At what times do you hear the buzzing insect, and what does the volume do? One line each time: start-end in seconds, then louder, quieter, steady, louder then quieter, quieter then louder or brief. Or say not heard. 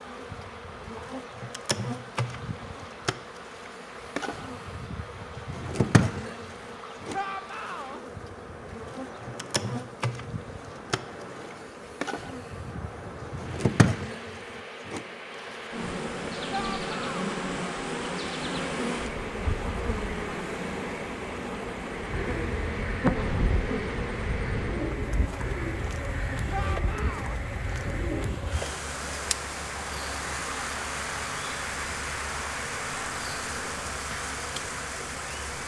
0.0-35.6 steady.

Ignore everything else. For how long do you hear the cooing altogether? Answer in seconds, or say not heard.
6 s.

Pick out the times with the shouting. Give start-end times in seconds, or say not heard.
7.1-8.0, 16.5-17.4, 26.5-27.4.